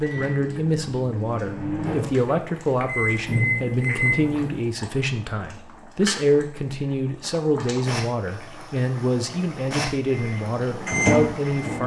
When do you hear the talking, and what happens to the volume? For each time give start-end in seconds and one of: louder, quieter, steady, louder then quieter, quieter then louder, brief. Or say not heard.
0.0-11.8 steady.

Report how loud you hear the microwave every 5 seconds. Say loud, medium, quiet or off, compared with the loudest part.
loud, off, loud.